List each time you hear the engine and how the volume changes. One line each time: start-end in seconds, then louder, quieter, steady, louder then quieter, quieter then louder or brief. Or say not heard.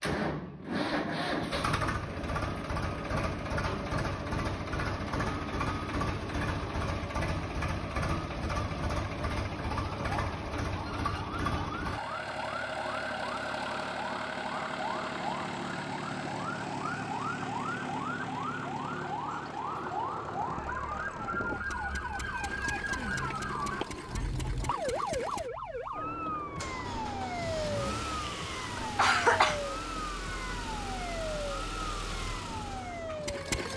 0.0-33.7 quieter.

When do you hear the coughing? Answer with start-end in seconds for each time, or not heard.
28.3-29.6.